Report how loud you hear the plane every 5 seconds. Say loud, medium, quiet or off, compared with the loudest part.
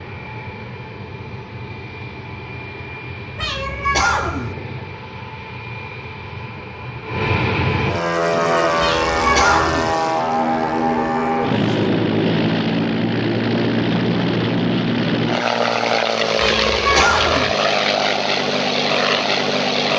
quiet, loud, loud, loud.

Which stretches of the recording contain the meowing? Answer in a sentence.
You can hear the meowing from 3.4 to 4.5 s, from 8.8 to 9.9 s and from 16.4 to 17.6 s.